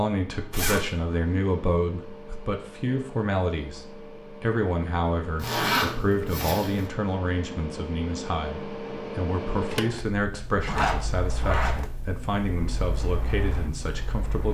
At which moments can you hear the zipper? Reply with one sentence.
The zipper can be heard from 0.5 to 0.9 s, from 5.3 to 6.9 s and from 10.6 to 11.8 s.